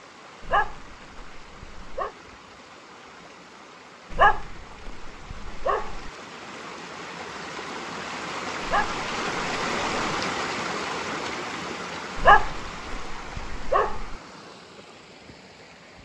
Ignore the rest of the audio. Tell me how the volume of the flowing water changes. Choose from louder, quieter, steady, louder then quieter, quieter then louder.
louder then quieter.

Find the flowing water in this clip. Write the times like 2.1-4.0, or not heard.
0.0-16.0.